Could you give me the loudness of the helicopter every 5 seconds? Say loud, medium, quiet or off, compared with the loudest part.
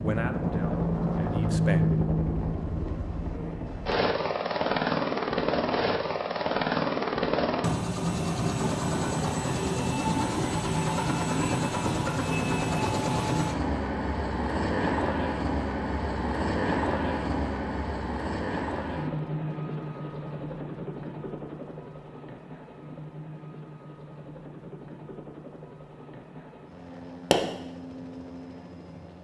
loud, loud, loud, loud, quiet, quiet.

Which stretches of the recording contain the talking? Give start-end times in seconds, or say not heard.
0.0-1.8.